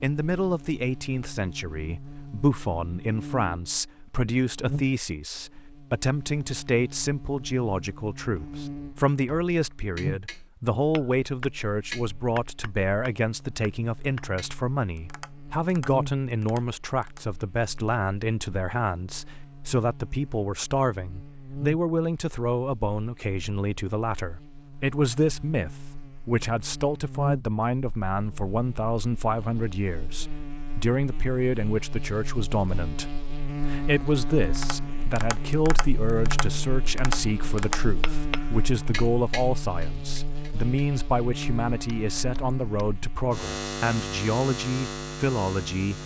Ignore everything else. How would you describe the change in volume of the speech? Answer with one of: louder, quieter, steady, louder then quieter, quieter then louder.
steady.